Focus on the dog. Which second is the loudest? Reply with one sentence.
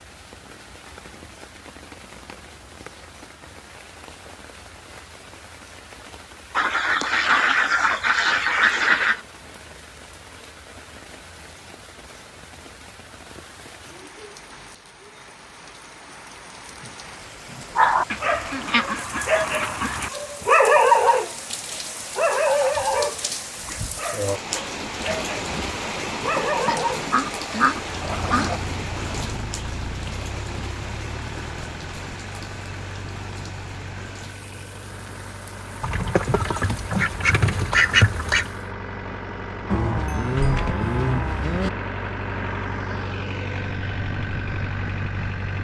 The volume of the dog peaks at 21 seconds.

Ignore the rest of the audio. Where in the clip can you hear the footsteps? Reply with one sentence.
The footsteps can't be heard in this clip.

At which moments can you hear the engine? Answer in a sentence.
The engine can be heard from 27.9 to 45.6 s.